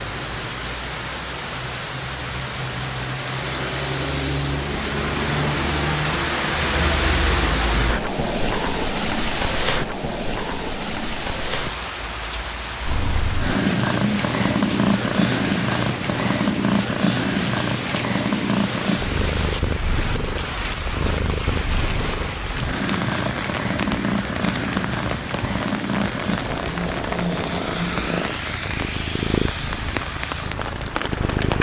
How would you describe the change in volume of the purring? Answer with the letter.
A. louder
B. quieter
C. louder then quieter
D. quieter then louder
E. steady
B.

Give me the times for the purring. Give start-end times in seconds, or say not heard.
12.8-31.5.